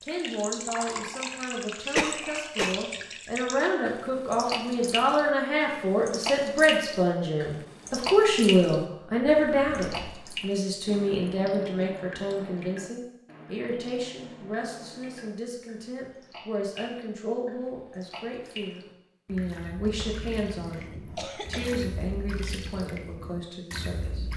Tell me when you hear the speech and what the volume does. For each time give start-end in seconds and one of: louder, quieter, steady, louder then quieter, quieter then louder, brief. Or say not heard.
0.0-24.3 louder then quieter.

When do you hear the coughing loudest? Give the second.
2 s.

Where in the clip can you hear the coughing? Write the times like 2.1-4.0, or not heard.
1.9-2.8, 20.2-22.2.